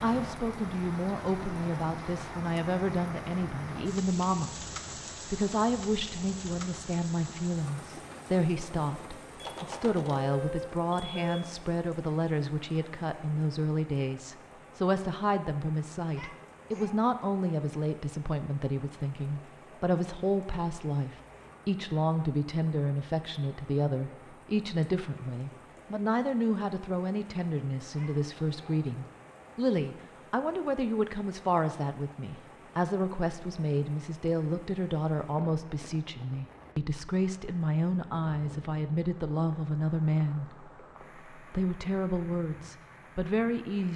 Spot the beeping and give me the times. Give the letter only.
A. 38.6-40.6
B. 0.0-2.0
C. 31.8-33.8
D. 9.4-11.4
D.